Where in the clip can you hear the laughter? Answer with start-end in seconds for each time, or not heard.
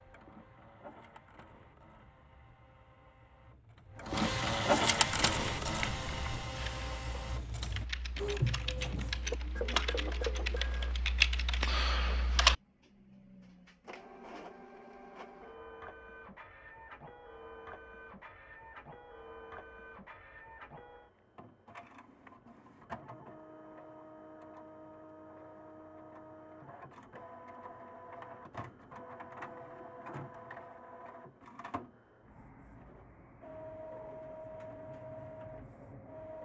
not heard.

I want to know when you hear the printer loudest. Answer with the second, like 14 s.
5 s.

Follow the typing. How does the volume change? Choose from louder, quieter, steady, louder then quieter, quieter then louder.
louder.